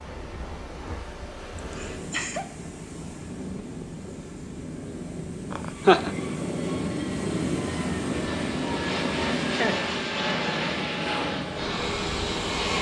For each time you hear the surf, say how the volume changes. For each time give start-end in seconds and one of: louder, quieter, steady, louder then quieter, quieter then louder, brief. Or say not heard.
0.0-12.7 louder then quieter.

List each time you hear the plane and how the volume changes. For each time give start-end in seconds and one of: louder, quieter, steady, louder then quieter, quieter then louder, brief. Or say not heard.
0.0-12.7 louder.